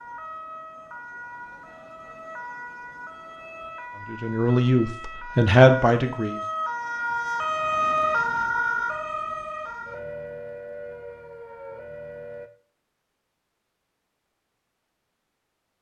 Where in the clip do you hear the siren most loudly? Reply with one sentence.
The volume of the siren peaks at 8 seconds.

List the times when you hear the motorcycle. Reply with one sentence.
You can't hear the motorcycle here.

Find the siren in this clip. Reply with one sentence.
The siren can be heard from 0.0 to 12.5 s.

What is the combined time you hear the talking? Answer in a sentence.
You can hear the talking for 2 seconds altogether.